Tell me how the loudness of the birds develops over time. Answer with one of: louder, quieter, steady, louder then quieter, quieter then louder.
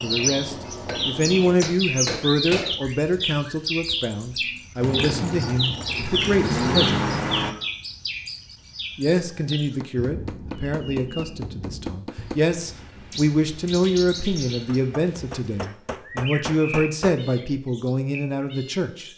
quieter.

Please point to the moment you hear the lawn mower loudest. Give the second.
7 s.